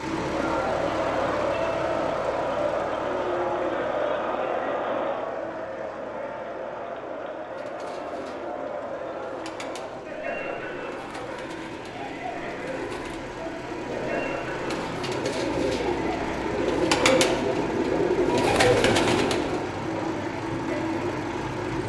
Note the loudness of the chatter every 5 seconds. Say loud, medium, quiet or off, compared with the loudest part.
loud, medium, medium, medium, medium.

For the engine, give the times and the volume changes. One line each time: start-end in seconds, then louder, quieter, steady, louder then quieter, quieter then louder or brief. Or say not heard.
0.0-21.8 quieter then louder.